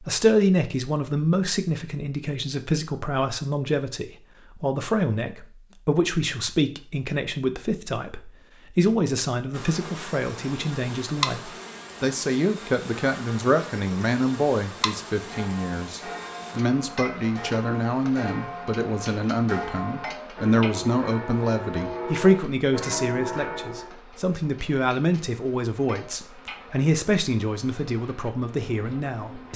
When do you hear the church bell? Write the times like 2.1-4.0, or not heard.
15.2-23.9.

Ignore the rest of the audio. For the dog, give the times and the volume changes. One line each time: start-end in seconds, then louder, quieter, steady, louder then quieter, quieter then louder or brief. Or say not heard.
not heard.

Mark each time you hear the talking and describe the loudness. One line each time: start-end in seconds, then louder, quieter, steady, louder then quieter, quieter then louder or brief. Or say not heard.
0.0-29.5 steady.